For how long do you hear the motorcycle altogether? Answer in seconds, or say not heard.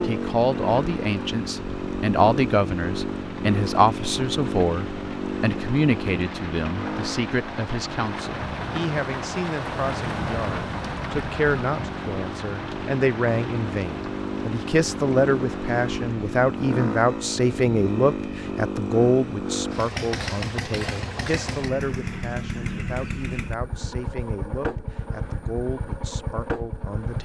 27 s.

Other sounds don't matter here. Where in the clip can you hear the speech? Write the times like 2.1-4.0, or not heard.
0.0-27.1.